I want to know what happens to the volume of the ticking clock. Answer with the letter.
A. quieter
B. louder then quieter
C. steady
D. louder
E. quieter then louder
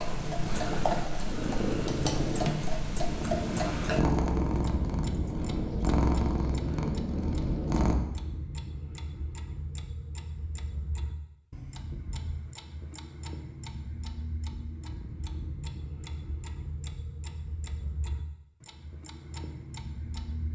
A.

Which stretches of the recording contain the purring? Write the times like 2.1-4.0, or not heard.
0.0-8.0.